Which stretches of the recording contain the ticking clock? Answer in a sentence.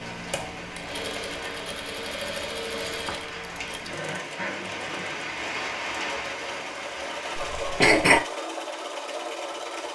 You can't hear the ticking clock here.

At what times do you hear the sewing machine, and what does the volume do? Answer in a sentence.
You can hear the sewing machine from 0.0 to 9.9 s, at a steady volume.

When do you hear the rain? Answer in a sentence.
You can hear the rain from 0.0 to 8.0 s.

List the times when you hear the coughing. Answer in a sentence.
The coughing can be heard from 7.3 to 8.2 s.